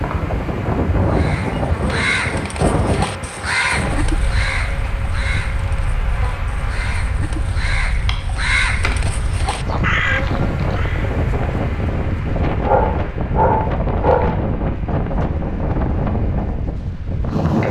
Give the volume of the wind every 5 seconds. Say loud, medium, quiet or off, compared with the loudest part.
loud, medium, loud, loud.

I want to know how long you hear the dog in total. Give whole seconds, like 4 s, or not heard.
2 s.